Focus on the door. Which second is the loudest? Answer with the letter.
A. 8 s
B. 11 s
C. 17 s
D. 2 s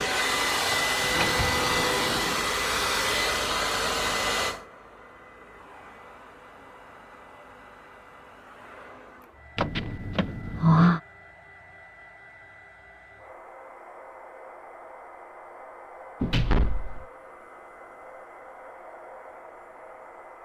B.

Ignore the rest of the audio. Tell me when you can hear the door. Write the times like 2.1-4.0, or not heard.
1.1-2.5, 9.6-11.0, 16.2-17.1.